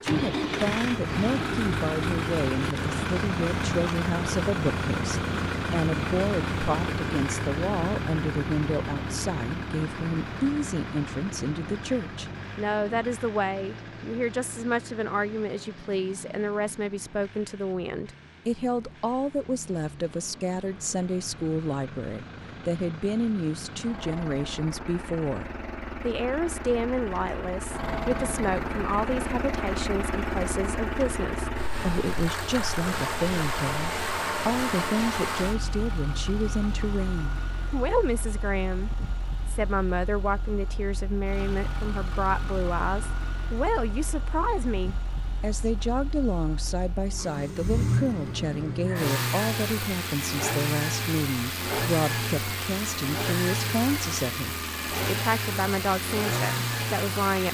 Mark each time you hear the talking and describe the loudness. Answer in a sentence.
The talking can be heard from 0.0 to 57.4 s, at a steady volume.